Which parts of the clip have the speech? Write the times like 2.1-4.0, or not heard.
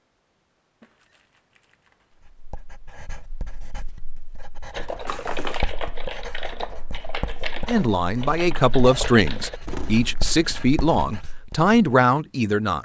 7.7-12.8.